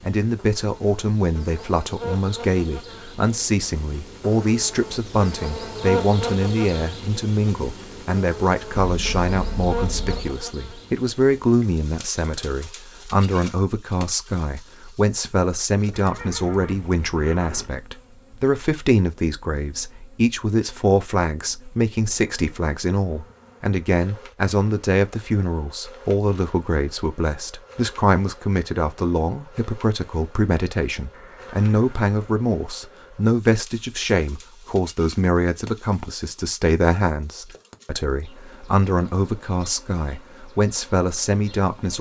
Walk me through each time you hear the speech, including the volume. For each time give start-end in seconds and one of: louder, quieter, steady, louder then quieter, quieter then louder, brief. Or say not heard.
0.0-41.9 steady.